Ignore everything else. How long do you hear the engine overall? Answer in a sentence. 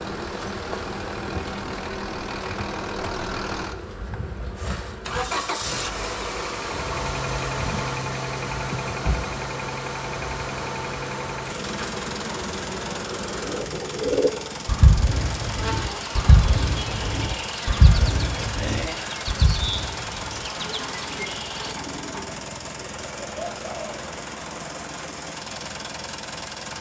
You can hear the engine for 27 seconds altogether.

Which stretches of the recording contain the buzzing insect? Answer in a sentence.
The buzzing insect can be heard from 0.0 to 13.7 s and from 15.1 to 21.8 s.